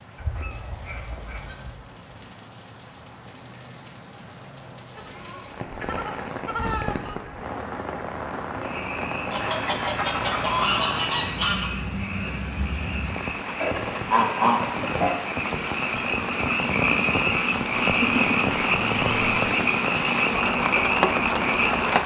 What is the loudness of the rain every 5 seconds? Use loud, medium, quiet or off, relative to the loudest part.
quiet, medium, medium, loud, loud.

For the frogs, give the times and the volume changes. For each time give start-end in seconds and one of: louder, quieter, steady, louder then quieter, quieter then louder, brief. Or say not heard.
8.6-22.0 louder.